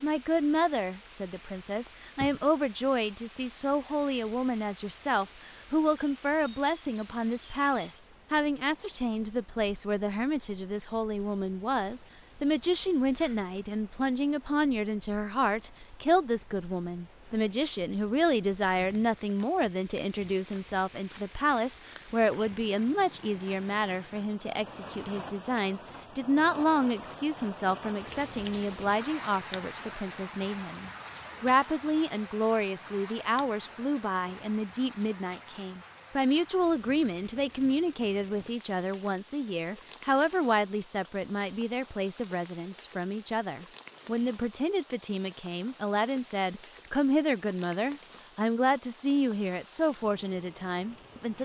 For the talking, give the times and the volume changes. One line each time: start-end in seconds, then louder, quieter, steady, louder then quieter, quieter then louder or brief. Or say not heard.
0.0-51.4 steady.